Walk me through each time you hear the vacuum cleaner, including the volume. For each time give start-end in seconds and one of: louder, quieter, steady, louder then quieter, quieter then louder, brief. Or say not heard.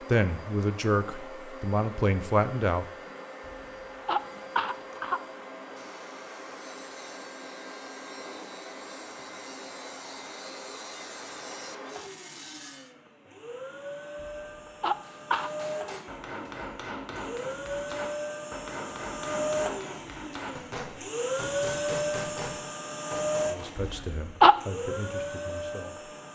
0.0-26.2 louder.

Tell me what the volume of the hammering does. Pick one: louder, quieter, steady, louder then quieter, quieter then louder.
steady.